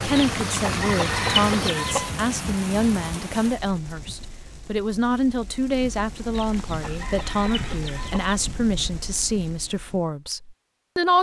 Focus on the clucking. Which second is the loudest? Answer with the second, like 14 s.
1 s.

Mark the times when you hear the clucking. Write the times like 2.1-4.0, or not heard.
0.1-2.1, 6.3-8.3.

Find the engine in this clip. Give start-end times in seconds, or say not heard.
0.0-1.9.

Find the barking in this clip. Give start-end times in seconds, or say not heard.
not heard.